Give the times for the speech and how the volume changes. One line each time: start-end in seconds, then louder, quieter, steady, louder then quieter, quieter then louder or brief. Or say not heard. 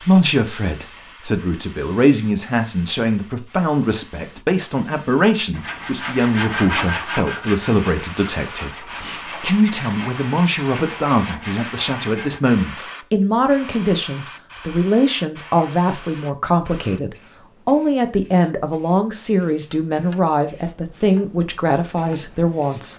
0.0-22.9 steady.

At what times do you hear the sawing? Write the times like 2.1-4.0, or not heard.
5.5-12.4.